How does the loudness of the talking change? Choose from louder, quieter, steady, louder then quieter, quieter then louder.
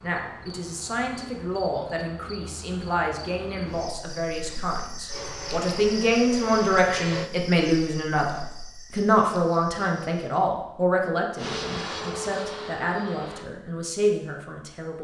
louder then quieter.